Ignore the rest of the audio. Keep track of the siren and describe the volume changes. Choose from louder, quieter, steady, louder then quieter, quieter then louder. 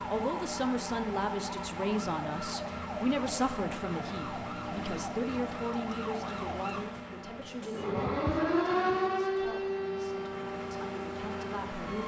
louder then quieter.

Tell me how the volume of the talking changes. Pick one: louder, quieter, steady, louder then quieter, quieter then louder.
quieter.